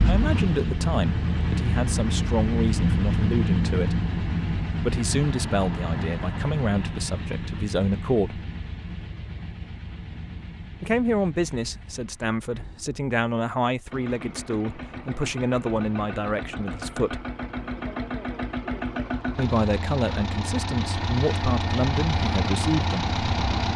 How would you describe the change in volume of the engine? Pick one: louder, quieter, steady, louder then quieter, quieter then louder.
quieter then louder.